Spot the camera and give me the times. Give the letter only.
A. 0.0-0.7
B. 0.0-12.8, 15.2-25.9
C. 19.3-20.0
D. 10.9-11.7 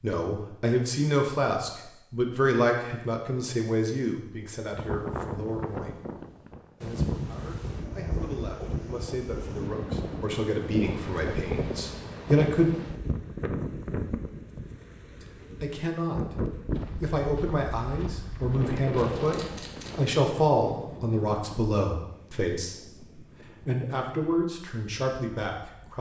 C.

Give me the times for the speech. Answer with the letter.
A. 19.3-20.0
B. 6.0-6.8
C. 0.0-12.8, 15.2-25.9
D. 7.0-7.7
C.